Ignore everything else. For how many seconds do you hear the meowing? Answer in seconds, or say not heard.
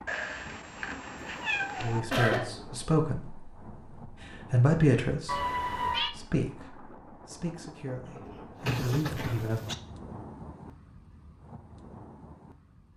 4 s.